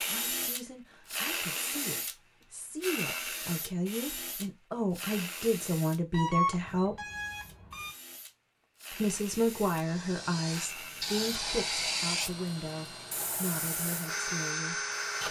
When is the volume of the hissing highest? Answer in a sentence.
The volume of the hissing peaks at 12 seconds.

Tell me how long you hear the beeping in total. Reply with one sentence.
The beeping can be heard for 2 seconds in total.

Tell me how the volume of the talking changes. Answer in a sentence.
The volume of the talking goes up, then down.